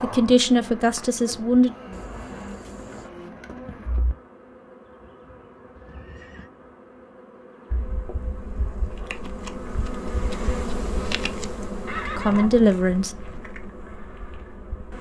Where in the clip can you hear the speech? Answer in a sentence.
You can hear the speech from 0.0 to 1.7 s and from 12.2 to 13.2 s.